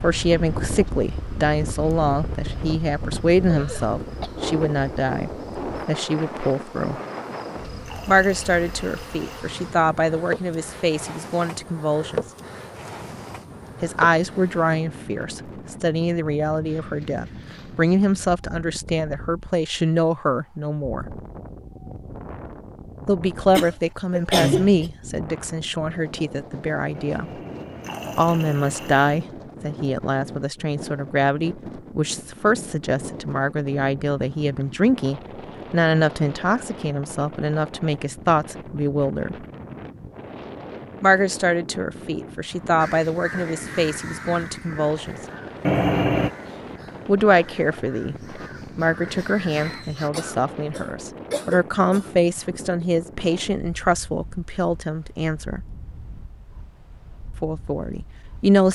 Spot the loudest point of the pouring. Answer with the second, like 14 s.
46 s.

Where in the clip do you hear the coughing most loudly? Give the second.
24 s.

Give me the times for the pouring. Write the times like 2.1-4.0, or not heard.
7.0-9.4, 26.9-29.1, 45.6-46.3.